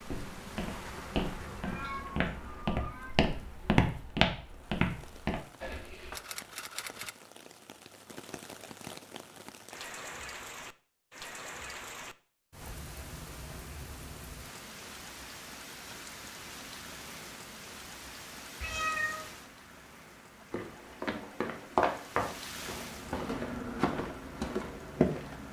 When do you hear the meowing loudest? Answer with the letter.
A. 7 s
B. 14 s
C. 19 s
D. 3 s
C.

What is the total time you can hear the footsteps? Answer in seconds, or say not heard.
11 s.